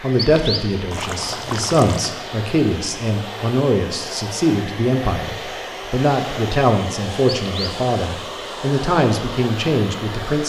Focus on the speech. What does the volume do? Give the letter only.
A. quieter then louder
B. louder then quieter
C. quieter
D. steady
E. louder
D.